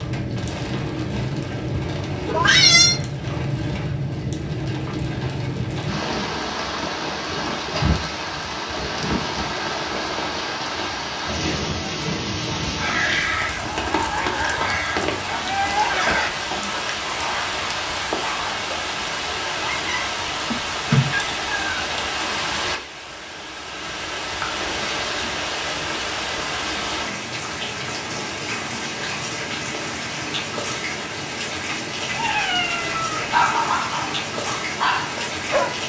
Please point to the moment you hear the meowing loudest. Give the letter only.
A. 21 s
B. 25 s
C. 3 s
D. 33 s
C.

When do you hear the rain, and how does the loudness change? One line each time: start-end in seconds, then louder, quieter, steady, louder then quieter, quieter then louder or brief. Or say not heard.
0.0-35.8 steady.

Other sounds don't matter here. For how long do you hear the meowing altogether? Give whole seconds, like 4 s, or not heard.
4 s.